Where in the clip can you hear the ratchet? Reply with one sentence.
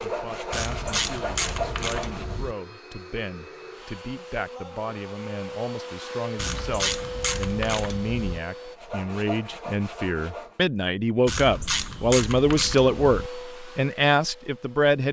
You can hear the ratchet from 0.5 to 2.5 s, from 6.3 to 8.4 s and from 11.2 to 13.3 s.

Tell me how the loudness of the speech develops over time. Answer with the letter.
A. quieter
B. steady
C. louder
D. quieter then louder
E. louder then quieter
C.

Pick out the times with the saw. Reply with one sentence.
The saw can be heard from 0.0 to 2.4 s and from 8.8 to 10.6 s.